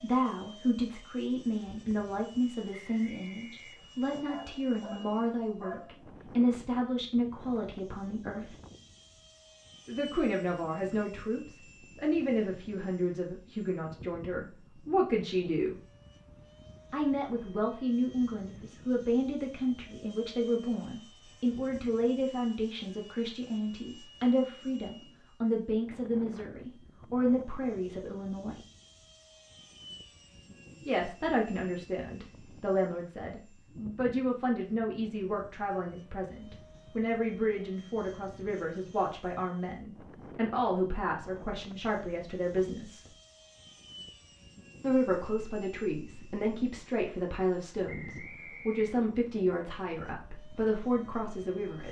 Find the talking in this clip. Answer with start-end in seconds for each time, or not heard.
0.0-8.6, 9.8-15.8, 16.9-28.6, 30.9-43.1, 44.8-51.8.